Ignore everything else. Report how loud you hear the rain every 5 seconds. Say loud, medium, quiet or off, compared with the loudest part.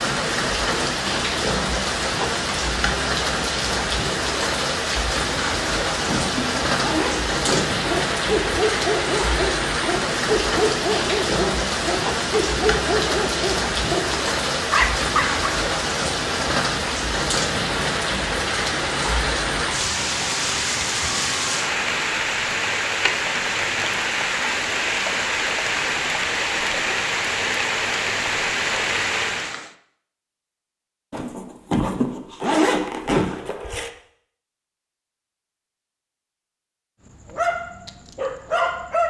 loud, loud, loud, loud, loud, loud, off, off.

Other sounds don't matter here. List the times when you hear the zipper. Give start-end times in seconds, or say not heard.
5.5-7.7, 31.1-33.9.